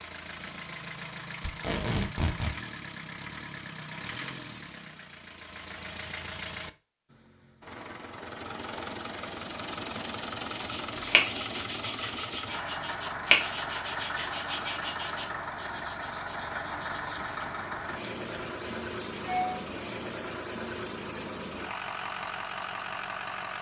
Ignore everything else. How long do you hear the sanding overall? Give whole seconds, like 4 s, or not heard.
9 s.